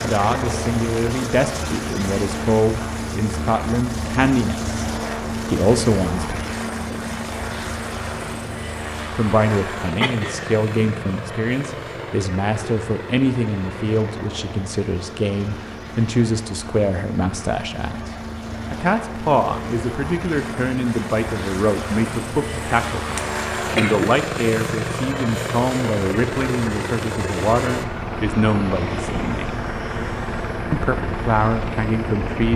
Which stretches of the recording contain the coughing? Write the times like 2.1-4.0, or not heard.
10.0-10.6, 23.1-24.1.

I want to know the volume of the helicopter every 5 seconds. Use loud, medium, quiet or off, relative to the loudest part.
loud, loud, medium, medium, loud, loud, loud.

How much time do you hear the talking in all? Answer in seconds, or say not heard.
28 s.